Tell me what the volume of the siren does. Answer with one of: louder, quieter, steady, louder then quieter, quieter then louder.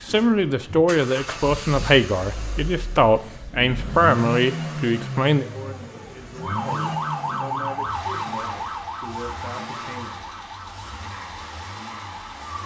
quieter.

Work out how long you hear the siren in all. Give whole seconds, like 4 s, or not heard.
6 s.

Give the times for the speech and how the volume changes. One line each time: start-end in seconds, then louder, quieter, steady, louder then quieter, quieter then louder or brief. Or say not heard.
0.1-10.3 quieter.